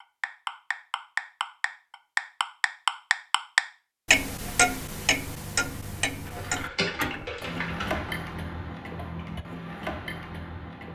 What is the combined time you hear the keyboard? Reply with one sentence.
You can hear the keyboard for 2 seconds altogether.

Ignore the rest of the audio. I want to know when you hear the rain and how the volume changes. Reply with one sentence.
The rain can't be heard in this clip.